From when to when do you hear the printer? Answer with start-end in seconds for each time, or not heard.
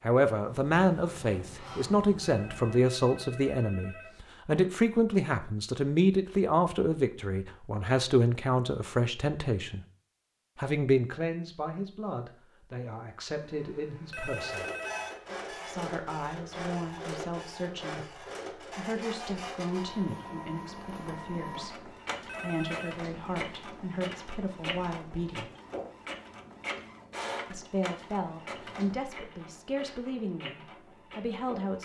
14.2-31.7.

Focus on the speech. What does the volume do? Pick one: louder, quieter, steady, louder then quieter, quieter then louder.
quieter.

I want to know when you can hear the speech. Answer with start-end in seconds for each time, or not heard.
0.0-9.8, 10.6-14.7, 15.5-25.5, 27.5-31.7.